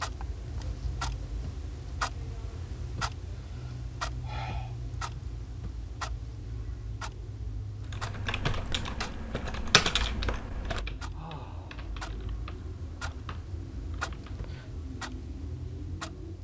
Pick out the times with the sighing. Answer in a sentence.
The sighing can be heard from 3.3 to 4.8 s and from 11.1 to 11.9 s.